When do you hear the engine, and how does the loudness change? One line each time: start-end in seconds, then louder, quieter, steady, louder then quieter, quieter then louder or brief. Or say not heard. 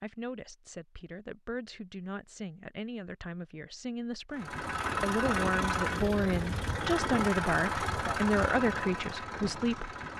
4.3-10.1 quieter.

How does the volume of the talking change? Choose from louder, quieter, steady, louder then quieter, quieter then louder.
louder.